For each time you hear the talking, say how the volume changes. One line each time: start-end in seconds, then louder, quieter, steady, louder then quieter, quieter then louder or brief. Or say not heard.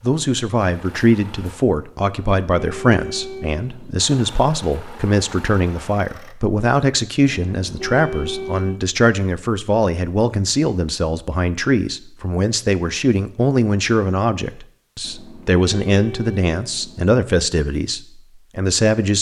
0.0-19.1 steady.